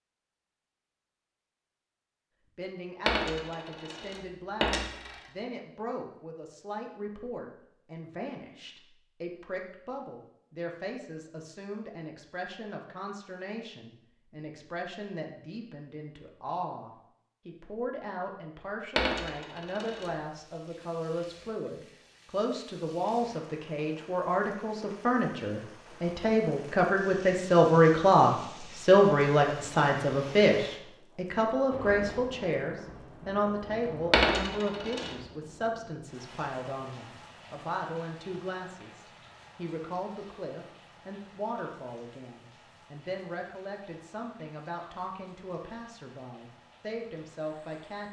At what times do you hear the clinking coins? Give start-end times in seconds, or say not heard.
3.0-5.2, 18.9-20.1, 34.1-35.1.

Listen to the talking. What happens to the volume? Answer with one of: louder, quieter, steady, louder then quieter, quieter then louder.
louder then quieter.